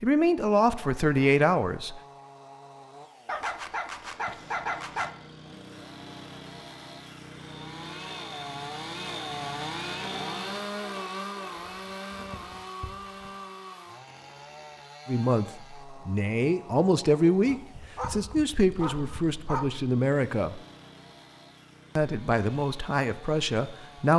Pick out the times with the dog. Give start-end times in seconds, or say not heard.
3.2-5.1, 11.6-13.3, 17.4-19.8.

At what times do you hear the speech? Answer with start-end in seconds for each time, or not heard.
0.0-2.0, 15.1-20.6, 21.9-24.1.